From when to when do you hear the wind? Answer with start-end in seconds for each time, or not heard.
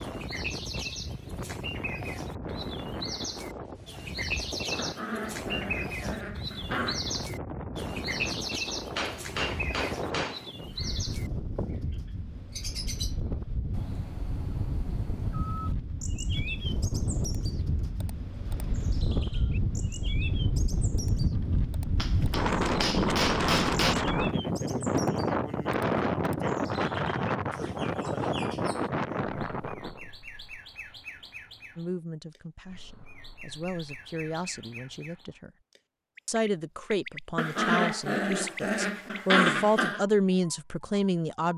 0.0-30.1.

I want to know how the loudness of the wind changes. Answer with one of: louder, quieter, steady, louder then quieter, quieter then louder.
louder.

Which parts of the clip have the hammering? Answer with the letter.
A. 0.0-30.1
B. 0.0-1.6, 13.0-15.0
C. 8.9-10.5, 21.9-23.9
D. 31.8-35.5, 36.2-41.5
C.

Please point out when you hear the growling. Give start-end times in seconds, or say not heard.
4.8-7.0, 37.4-40.0.